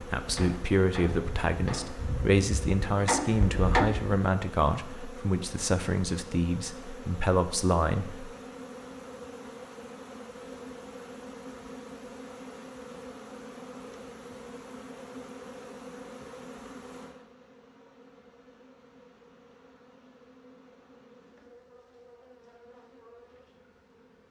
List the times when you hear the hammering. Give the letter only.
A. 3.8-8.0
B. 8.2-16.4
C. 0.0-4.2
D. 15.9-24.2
C.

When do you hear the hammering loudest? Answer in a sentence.
The volume of the hammering peaks at 4 seconds.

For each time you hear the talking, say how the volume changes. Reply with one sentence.
The talking can be heard from 0.0 to 8.3 s, at a steady volume.